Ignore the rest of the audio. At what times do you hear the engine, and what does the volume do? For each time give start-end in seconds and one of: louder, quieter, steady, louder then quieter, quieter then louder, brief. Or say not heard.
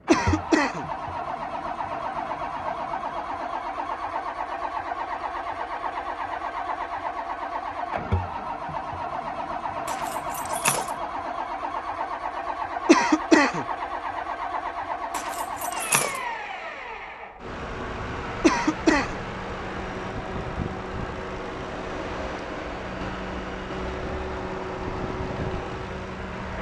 0.0-26.5 steady.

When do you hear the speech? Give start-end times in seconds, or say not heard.
not heard.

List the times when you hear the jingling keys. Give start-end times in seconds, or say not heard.
9.8-10.9, 15.1-16.2.